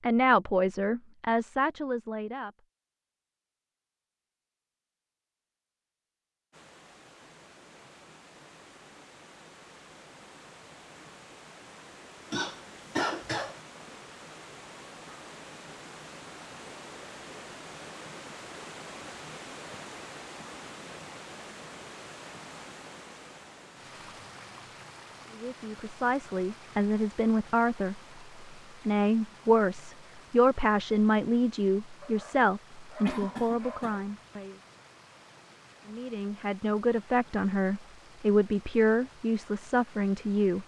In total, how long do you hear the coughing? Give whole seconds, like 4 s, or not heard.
2 s.